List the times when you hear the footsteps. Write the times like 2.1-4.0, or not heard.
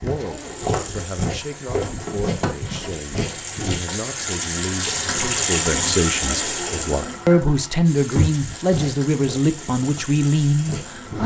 0.0-3.8, 8.1-11.2.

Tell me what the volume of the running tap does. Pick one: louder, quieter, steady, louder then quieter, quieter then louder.
louder then quieter.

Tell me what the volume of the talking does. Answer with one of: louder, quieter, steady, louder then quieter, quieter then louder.
louder.